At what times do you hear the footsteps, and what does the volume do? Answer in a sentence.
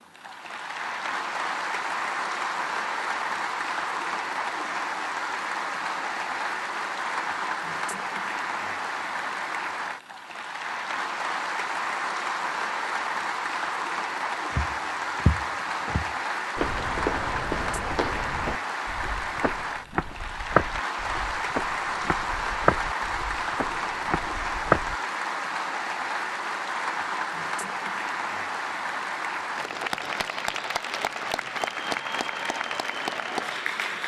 The footsteps can be heard from 14.5 to 24.9 s, getting quieter then louder.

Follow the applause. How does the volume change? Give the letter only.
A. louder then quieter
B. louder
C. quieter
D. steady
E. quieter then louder
D.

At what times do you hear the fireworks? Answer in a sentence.
You can't hear the fireworks here.